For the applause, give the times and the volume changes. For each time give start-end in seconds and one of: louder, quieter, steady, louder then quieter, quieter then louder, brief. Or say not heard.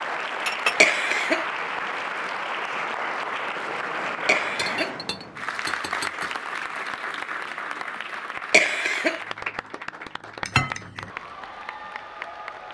0.0-12.6 quieter.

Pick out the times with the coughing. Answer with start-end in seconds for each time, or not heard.
0.8-1.4, 4.2-5.0, 8.5-9.2.